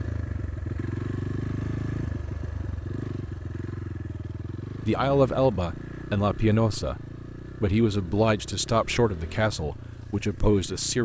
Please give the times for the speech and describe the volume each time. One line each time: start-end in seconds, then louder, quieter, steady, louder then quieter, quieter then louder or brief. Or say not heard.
4.8-11.0 steady.